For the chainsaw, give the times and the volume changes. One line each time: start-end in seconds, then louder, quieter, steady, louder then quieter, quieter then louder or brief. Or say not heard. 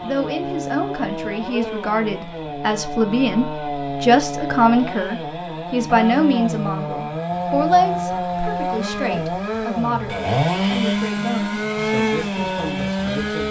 0.0-13.4 louder.